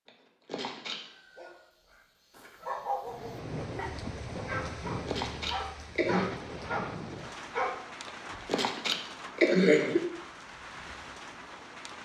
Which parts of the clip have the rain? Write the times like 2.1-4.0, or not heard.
3.0-11.9.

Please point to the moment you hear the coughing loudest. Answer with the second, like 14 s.
10 s.